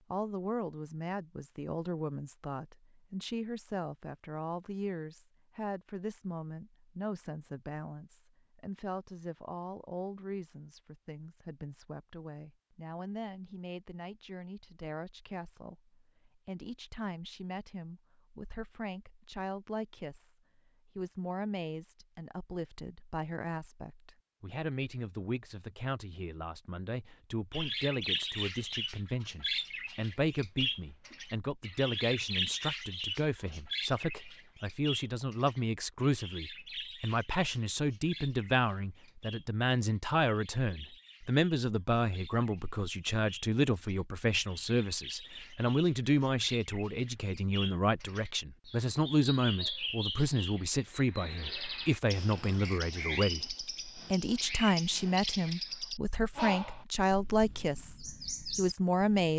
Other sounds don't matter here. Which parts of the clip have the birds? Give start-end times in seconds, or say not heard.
27.5-59.3.